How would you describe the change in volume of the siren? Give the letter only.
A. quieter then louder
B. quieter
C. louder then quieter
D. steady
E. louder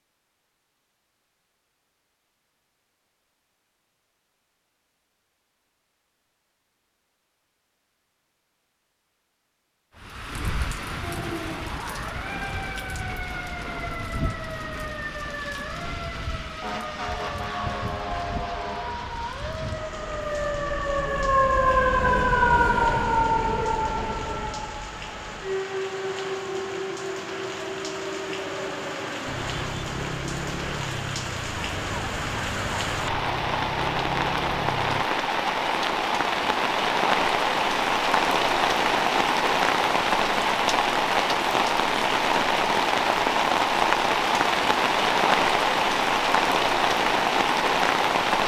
C.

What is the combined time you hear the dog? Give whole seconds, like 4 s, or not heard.
not heard.